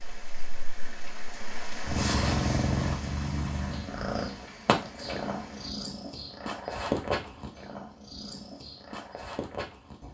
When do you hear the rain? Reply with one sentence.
The rain can be heard from 0.0 to 5.8 s.